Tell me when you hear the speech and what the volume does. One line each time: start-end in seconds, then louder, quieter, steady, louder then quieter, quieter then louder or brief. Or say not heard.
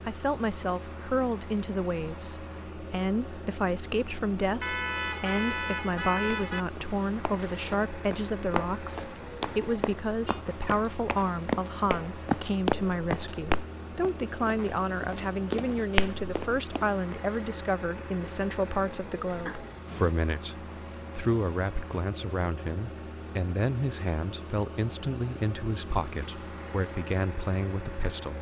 0.1-28.3 steady.